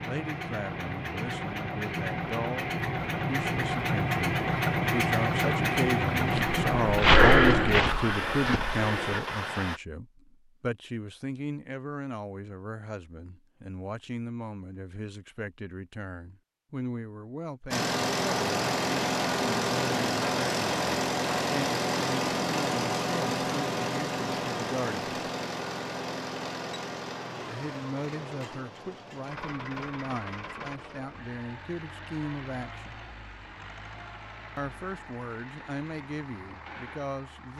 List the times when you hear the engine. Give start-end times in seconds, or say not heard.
0.0-9.8, 17.7-37.5.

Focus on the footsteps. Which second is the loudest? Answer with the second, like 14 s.
7 s.